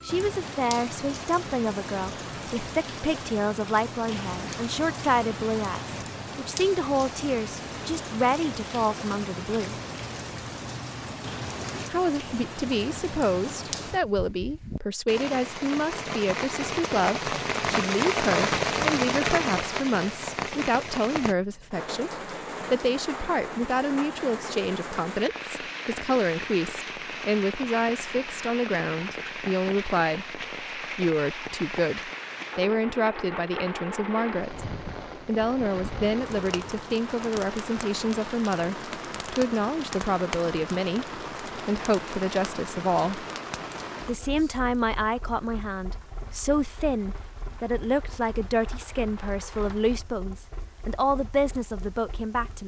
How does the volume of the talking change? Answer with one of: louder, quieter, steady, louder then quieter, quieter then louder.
steady.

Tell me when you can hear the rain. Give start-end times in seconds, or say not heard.
0.0-52.6.